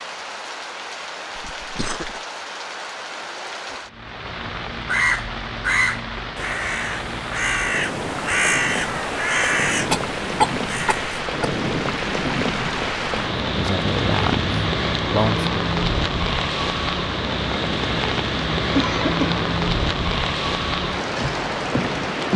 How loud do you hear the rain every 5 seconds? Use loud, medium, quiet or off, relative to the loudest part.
medium, medium, loud, loud, loud.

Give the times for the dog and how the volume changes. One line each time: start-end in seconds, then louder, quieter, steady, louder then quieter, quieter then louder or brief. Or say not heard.
not heard.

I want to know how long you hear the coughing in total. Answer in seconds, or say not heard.
3 s.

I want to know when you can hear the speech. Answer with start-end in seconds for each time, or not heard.
13.1-15.5.